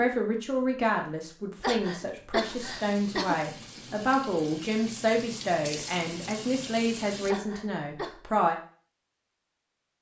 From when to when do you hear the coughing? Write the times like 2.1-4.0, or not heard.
1.6-3.4, 7.2-8.2.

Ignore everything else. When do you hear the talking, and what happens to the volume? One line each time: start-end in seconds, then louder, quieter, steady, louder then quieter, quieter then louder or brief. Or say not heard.
0.0-8.6 steady.